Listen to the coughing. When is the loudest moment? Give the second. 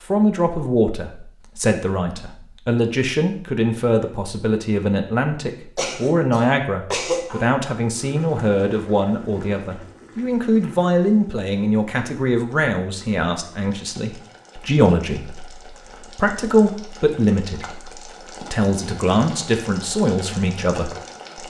7 s.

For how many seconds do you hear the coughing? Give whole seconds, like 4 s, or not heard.
2 s.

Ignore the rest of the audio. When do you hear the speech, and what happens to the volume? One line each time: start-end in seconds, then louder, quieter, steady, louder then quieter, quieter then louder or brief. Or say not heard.
0.1-21.4 steady.